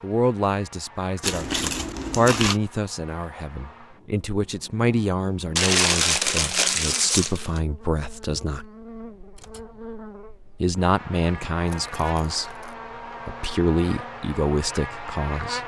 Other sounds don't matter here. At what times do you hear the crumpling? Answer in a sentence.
You can hear the crumpling from 1.2 to 2.5 s, from 5.5 to 7.6 s and from 11.7 to 12.8 s.